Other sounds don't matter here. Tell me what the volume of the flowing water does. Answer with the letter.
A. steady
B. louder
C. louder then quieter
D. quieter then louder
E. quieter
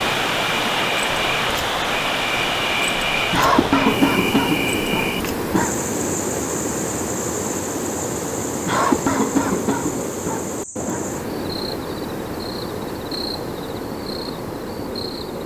E.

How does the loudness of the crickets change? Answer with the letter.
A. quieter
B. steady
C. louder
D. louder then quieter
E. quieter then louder
A.